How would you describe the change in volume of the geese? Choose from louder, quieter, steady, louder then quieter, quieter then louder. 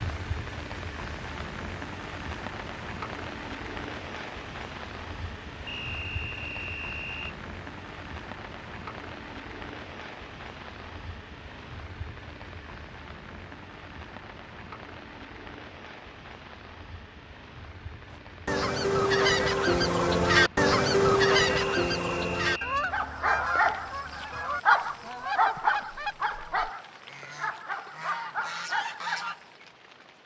quieter.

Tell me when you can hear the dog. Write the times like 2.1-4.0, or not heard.
22.9-29.4.